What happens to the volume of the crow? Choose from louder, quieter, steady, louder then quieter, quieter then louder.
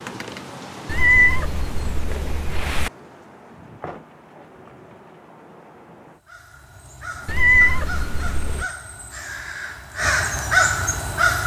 louder.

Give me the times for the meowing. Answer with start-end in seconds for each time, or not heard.
0.8-2.9, 7.2-8.7.